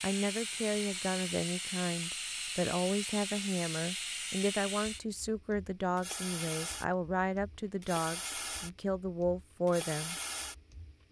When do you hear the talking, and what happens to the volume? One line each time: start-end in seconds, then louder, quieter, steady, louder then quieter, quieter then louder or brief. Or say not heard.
0.0-10.2 steady.